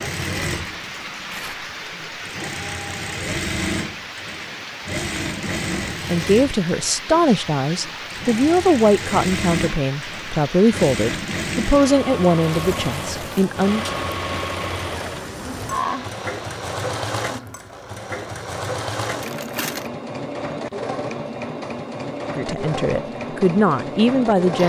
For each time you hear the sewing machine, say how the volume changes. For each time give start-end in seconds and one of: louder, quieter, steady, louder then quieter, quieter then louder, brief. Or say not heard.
0.0-24.6 steady.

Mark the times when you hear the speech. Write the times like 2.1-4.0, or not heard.
6.0-13.8, 22.4-24.6.